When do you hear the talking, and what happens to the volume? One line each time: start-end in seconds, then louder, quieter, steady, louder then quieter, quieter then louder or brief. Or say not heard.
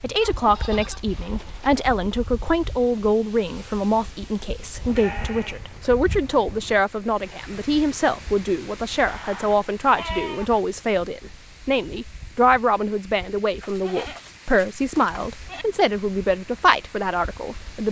0.0-17.8 steady.